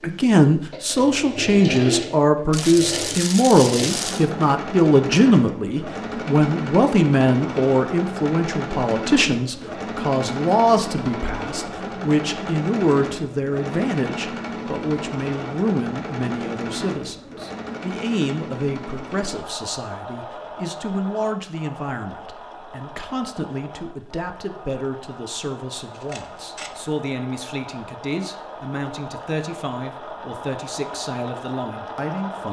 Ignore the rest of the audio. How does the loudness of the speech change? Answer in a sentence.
The volume of the speech goes down.